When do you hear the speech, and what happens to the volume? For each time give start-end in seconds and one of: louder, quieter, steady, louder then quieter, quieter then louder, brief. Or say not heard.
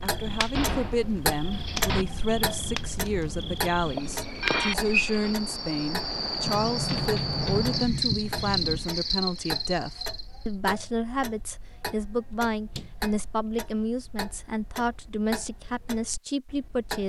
0.0-17.0 steady.